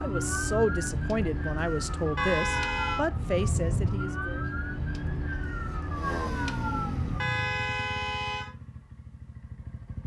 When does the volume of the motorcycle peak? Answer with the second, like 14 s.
7 s.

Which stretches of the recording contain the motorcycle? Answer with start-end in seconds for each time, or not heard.
5.8-10.0.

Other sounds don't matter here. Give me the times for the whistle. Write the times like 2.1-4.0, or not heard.
not heard.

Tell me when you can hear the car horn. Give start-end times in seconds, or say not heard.
2.1-3.0, 7.2-8.6.